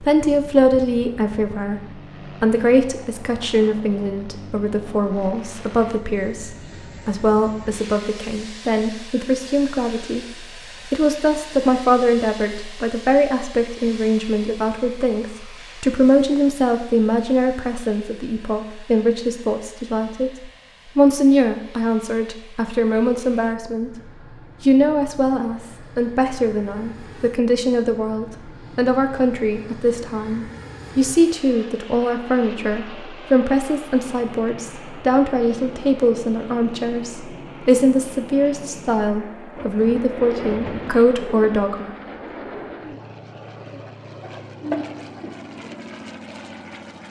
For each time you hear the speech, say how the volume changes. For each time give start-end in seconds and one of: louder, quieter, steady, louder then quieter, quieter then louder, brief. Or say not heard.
0.0-42.0 steady.